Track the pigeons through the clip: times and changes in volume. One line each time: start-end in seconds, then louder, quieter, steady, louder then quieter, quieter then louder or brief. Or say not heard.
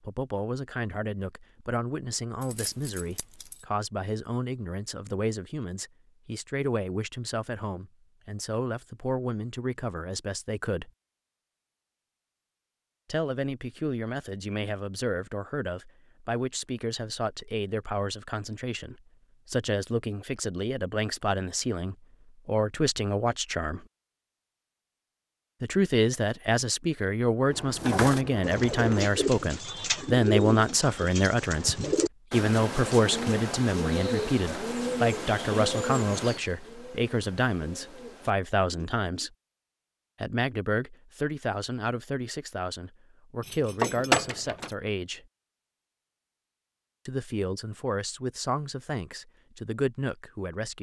27.8-39.3 quieter.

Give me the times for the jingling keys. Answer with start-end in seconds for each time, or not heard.
2.4-3.6, 27.5-29.1, 43.4-44.8.